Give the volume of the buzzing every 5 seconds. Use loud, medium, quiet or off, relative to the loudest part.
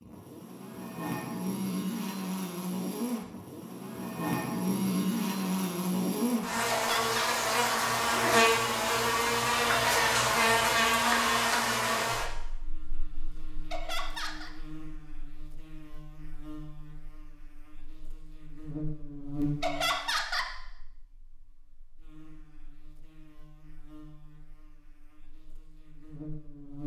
medium, loud, loud, quiet, quiet, quiet.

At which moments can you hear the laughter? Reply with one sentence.
The laughter can be heard from 6.7 to 7.2 s, from 13.7 to 14.5 s and from 19.6 to 20.4 s.